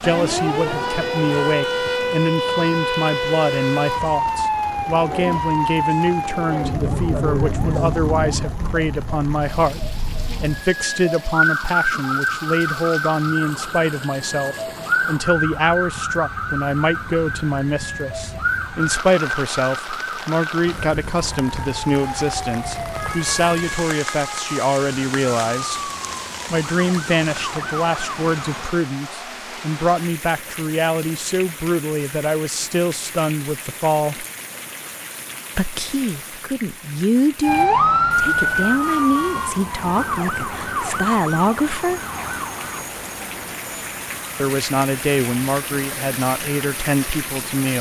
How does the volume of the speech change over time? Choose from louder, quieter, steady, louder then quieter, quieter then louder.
steady.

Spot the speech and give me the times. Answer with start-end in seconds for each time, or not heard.
0.0-25.9, 26.5-34.2, 35.5-42.0, 44.4-47.7.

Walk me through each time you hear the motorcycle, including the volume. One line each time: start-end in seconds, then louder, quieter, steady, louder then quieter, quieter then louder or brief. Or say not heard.
not heard.